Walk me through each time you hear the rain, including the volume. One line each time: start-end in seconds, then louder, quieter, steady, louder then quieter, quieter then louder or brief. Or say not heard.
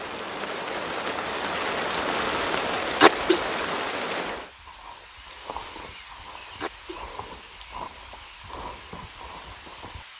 0.0-10.1 quieter.